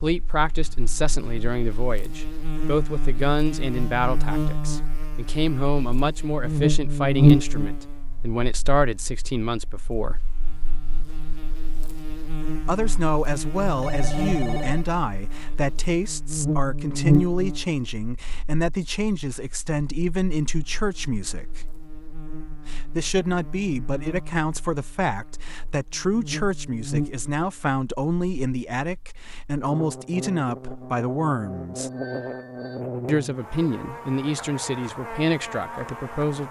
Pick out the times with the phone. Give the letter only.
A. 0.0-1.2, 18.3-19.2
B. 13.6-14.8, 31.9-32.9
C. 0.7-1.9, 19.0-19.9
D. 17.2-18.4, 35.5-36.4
B.